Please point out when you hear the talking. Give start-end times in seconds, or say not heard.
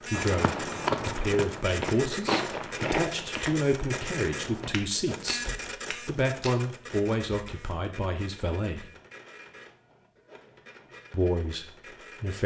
0.1-8.8, 11.1-12.4.